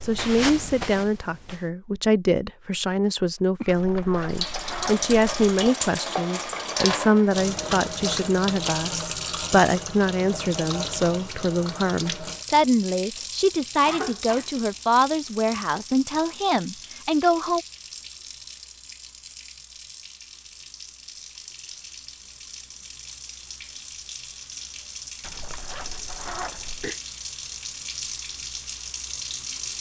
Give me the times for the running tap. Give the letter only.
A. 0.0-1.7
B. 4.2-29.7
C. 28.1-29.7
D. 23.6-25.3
B.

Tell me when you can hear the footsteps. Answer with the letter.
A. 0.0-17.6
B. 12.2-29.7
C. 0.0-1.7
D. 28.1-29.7
C.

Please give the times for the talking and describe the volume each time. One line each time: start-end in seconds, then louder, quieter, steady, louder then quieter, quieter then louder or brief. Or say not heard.
0.0-17.6 steady.